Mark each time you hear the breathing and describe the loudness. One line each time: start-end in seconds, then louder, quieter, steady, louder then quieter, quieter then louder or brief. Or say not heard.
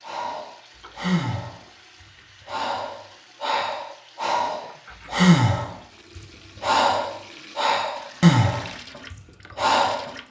0.1-10.1 louder.